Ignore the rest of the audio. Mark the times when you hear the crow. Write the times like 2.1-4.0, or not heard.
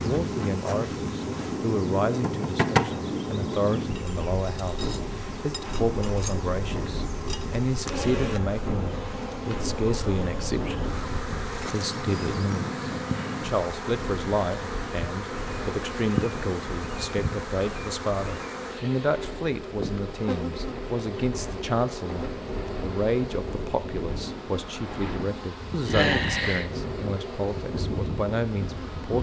not heard.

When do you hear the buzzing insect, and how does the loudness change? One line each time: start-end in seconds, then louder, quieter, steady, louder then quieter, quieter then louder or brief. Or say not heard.
0.0-29.1 steady.